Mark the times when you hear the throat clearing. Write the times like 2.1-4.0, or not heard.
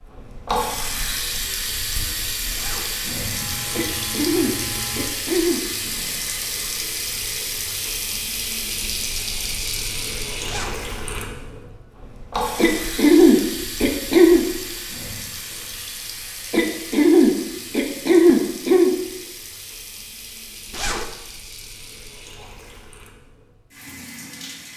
3.7-5.6, 12.6-14.4, 16.5-18.9.